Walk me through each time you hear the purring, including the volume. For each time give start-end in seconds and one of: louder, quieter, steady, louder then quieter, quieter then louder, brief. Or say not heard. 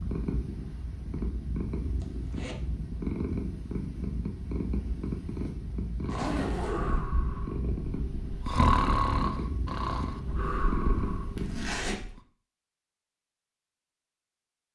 0.0-11.8 steady.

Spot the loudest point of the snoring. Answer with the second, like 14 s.
9 s.